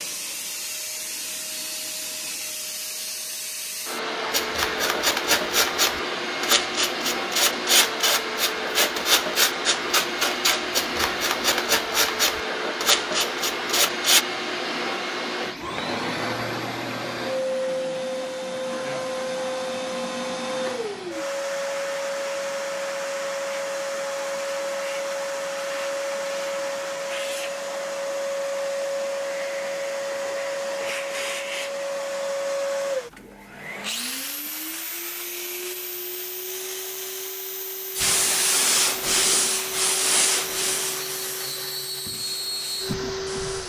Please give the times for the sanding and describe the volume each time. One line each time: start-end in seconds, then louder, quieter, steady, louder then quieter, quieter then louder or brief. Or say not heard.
4.3-14.2 steady
38.0-43.6 quieter.